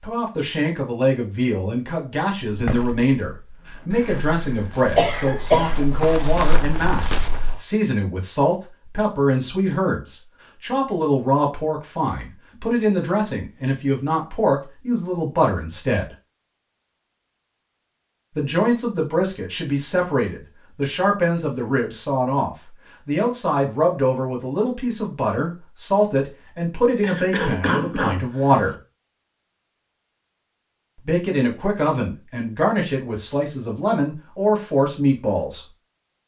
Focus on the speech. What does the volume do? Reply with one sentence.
The loudness of the speech stays about the same.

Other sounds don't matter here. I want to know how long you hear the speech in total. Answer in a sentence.
The speech can be heard for 31 seconds in total.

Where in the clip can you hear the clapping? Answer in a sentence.
The clapping can't be heard in this clip.